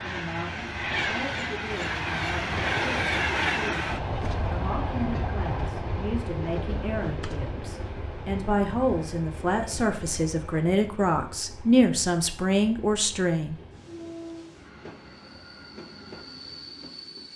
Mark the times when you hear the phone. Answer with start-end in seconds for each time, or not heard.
not heard.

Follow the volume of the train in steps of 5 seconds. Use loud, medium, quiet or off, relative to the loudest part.
loud, medium, quiet, quiet.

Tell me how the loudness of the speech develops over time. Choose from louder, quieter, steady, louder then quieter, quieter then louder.
louder.